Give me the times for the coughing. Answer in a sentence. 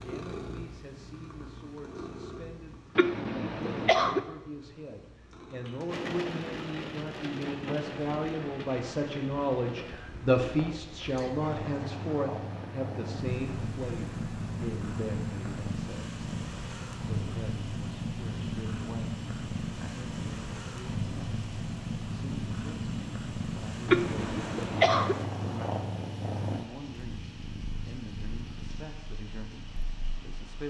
The coughing can be heard from 3.0 to 4.2 s and from 23.9 to 25.1 s.